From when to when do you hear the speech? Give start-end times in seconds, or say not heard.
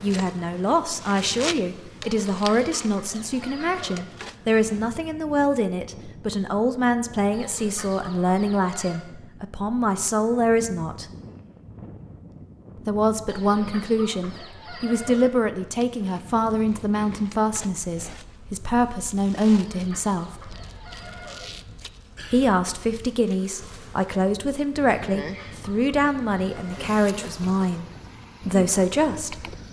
0.0-11.1, 12.8-20.3, 22.3-27.9, 28.4-29.6.